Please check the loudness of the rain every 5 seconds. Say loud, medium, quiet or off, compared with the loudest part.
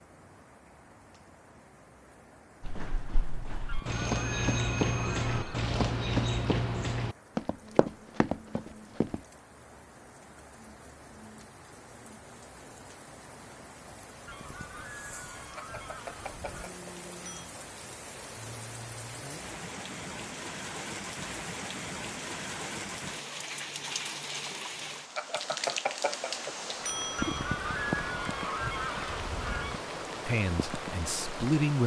quiet, quiet, quiet, medium, loud, loud, loud.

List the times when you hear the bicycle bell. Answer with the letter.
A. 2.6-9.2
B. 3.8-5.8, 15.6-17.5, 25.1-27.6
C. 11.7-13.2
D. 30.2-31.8
B.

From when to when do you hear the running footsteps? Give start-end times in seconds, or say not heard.
2.6-9.2.